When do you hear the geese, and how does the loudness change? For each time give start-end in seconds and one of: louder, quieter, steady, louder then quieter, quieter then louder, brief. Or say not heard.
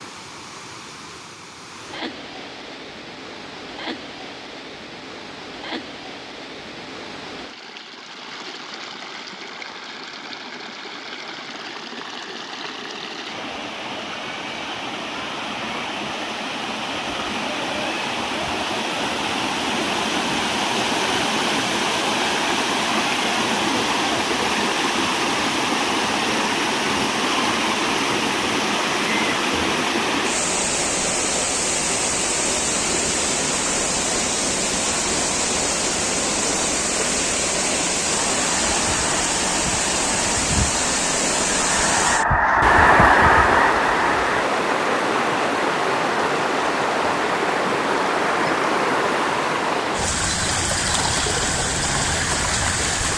38.1-44.5 louder.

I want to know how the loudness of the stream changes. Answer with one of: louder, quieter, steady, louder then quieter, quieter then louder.
louder.